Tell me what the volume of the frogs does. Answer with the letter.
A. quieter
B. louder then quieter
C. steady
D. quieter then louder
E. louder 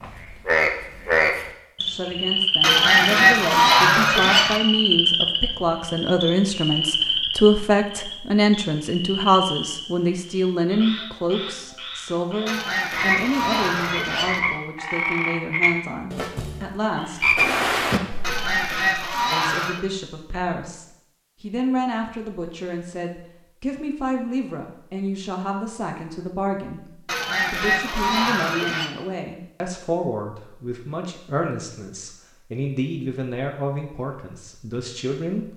D.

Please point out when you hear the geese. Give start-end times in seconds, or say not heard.
2.6-4.6, 12.4-14.4, 18.2-19.8, 27.1-28.9.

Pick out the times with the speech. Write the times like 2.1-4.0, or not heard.
1.8-17.2, 19.3-35.5.